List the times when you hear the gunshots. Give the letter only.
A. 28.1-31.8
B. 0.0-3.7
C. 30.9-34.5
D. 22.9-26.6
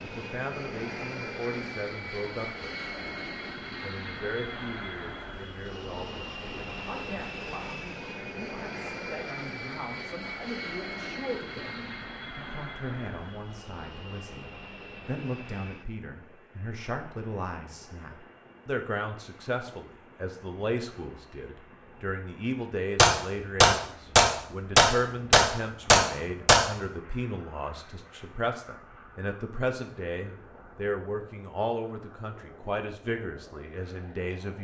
D.